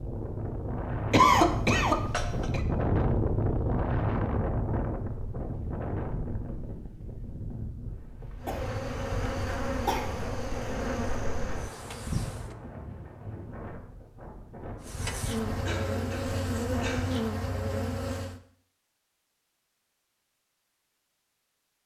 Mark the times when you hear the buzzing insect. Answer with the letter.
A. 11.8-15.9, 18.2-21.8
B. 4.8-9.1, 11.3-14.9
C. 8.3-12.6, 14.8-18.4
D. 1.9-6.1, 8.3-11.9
C.